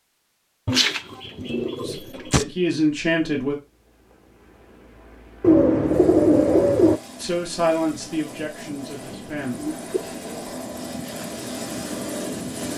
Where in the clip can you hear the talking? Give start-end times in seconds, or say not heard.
1.8-3.5, 7.2-9.6.